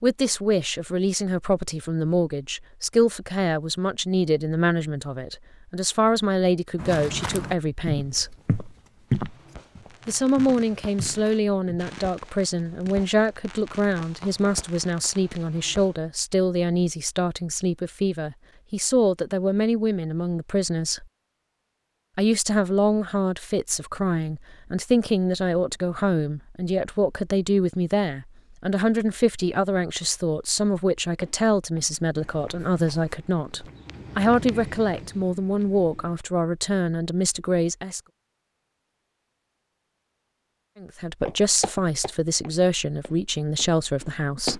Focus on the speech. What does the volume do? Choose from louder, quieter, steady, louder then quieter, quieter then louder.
steady.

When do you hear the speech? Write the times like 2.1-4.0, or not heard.
0.0-8.3, 10.1-21.1, 22.1-38.0, 40.8-44.5.